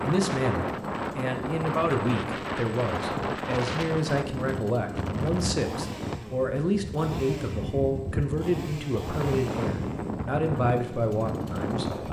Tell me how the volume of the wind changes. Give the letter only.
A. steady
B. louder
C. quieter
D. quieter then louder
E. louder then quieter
A.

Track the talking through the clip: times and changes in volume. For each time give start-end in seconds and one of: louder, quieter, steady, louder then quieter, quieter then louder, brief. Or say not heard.
0.0-12.0 steady.